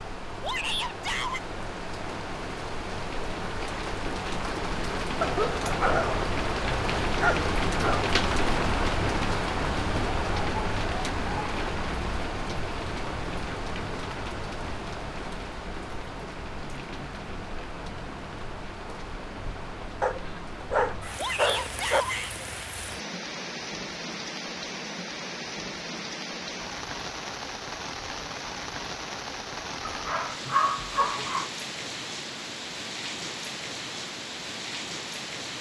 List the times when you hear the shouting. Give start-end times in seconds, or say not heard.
0.4-1.4, 21.1-22.4.